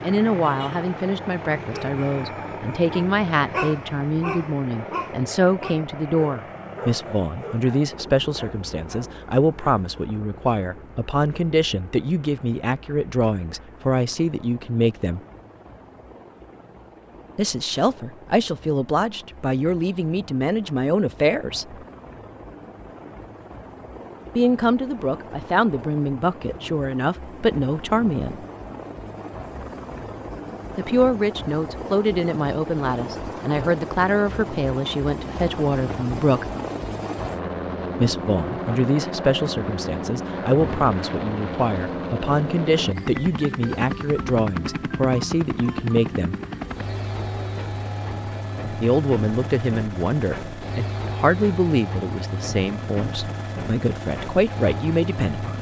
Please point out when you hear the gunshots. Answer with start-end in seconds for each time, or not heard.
not heard.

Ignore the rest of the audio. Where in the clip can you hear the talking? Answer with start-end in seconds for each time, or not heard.
0.0-15.2, 17.4-21.8, 24.4-28.4, 30.8-36.5, 38.0-46.4, 48.8-55.5.